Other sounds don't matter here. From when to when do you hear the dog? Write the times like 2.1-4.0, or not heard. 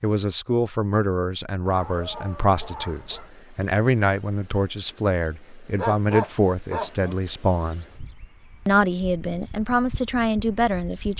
1.6-3.4, 5.8-7.2.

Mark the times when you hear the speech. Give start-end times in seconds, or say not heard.
0.0-7.8, 8.7-11.1.